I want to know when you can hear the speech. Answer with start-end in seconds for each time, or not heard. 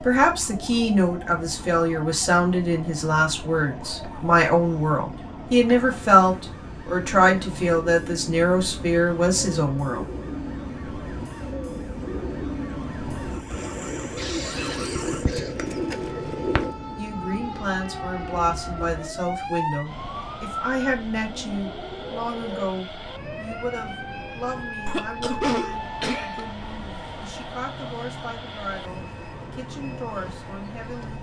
0.0-10.1, 16.9-31.1.